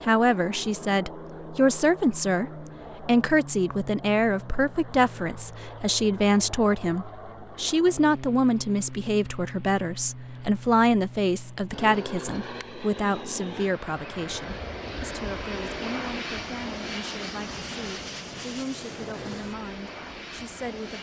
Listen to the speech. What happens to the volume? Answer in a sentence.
The volume of the speech goes down.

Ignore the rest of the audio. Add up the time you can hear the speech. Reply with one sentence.
You can hear the speech for 21 seconds altogether.